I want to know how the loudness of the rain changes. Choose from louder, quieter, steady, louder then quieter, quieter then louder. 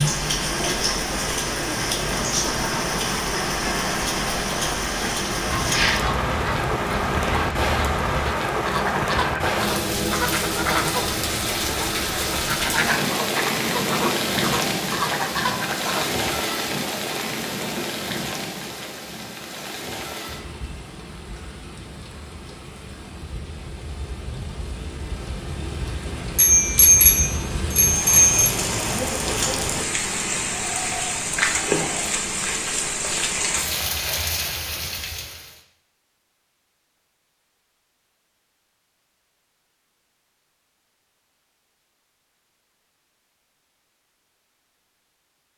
quieter then louder.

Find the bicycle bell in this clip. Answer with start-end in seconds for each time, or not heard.
26.4-28.6.